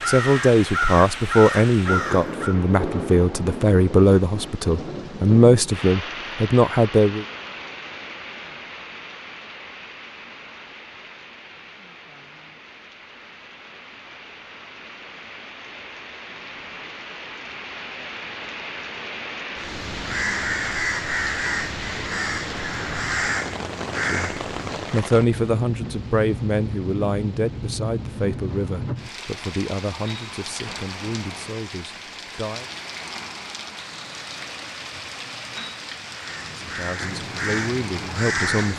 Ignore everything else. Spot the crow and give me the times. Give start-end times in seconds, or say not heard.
0.0-2.5, 19.6-25.0, 36.1-38.7.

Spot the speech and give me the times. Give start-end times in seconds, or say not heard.
0.1-7.2, 24.1-32.7, 36.6-38.7.